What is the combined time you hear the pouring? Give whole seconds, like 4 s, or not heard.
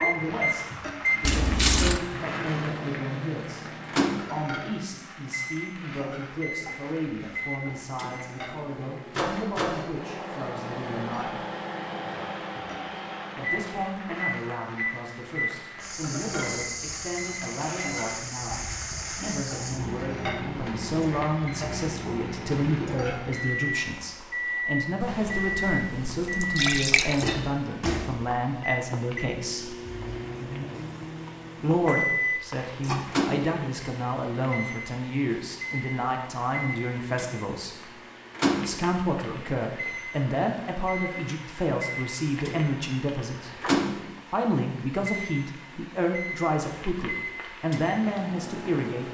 3 s.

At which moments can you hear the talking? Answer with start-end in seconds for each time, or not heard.
0.0-11.4, 13.3-29.8, 31.6-37.9, 38.6-49.0.